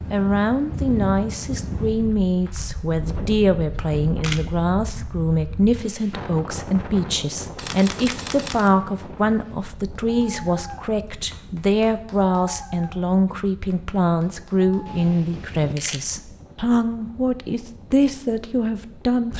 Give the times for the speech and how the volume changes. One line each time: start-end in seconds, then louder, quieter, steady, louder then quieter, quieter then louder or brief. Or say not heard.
0.1-19.3 steady.